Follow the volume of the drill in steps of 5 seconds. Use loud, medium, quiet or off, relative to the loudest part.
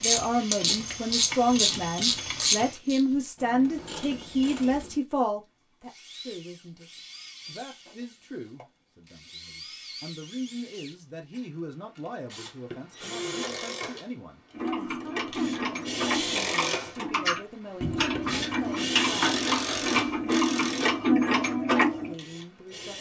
quiet, quiet, medium, loud, medium.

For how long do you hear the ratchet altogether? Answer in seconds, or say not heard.
13 s.